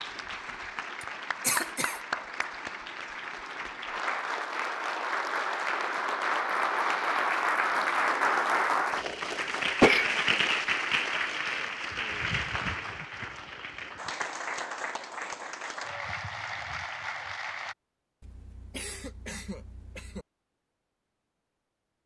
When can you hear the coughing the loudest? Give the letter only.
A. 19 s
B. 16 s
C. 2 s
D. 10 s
D.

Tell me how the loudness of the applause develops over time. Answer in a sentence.
The loudness of the applause goes up, then down.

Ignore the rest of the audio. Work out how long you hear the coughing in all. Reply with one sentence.
You can hear the coughing for 4 seconds altogether.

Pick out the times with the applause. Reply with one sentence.
You can hear the applause from 0.0 to 17.8 s.